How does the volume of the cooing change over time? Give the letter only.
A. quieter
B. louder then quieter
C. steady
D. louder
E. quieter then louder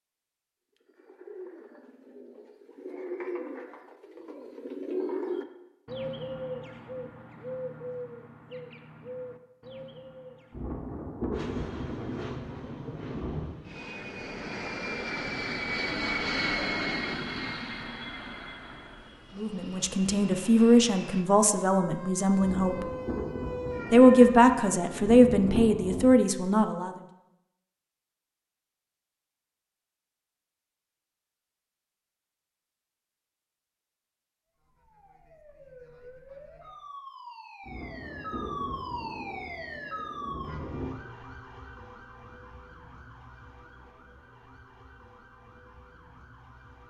B.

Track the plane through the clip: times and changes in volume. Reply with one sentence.
You can hear the plane from 11.3 to 21.3 s, getting louder then quieter.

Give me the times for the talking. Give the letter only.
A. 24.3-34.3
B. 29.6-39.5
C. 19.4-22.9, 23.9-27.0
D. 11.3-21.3
C.